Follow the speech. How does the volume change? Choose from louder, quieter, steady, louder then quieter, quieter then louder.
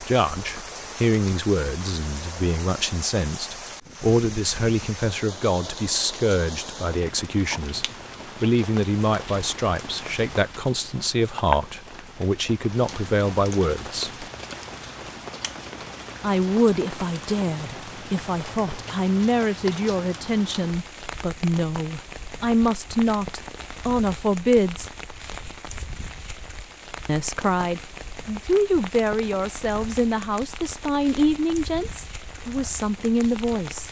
steady.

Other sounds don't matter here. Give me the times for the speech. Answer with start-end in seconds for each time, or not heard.
0.0-14.2, 16.2-24.9, 27.1-33.8.